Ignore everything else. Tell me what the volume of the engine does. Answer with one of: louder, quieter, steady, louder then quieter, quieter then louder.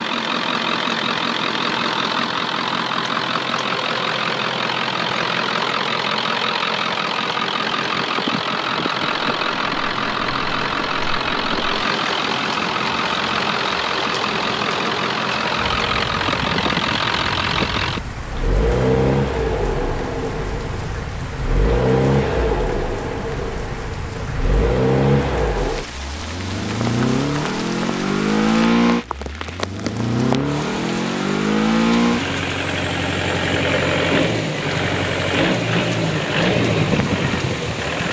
steady.